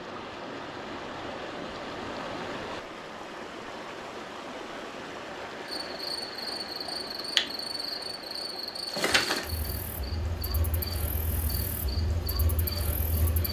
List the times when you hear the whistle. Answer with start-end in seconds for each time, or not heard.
not heard.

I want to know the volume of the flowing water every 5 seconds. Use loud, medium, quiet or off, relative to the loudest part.
loud, loud, medium.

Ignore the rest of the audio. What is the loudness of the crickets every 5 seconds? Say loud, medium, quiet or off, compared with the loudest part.
off, loud, medium.